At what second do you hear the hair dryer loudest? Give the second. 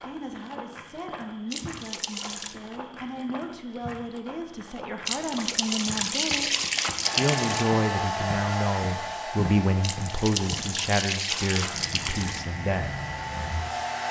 8 s.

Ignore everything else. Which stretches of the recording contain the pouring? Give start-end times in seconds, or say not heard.
1.5-2.5, 5.0-7.7, 9.8-12.5.